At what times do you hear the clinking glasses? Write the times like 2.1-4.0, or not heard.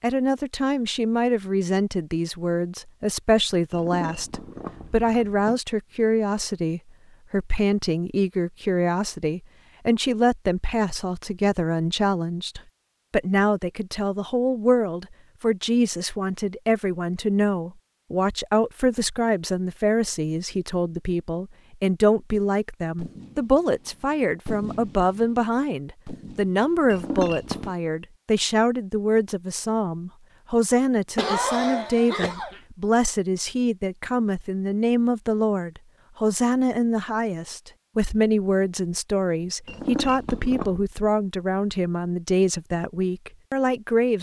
3.7-5.6, 26.9-27.8, 39.6-40.8.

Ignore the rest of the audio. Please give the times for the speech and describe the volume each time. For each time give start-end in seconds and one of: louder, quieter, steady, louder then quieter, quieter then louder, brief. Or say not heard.
0.0-44.1 steady.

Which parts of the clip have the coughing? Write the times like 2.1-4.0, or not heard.
31.1-32.6.